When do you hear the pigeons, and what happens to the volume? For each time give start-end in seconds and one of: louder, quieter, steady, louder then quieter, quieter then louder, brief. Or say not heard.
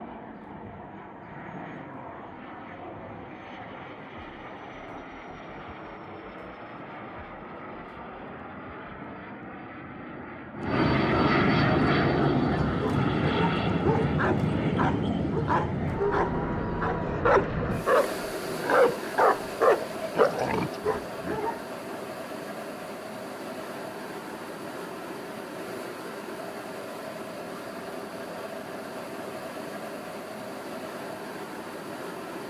not heard.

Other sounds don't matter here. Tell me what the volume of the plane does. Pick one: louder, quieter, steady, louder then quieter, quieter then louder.
louder then quieter.